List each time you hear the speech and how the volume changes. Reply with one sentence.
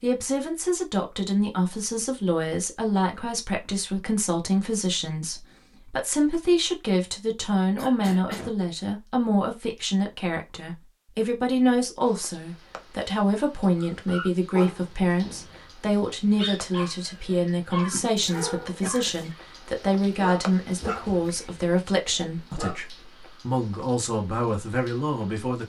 You can hear the speech from 0.0 to 25.6 s, at a steady volume.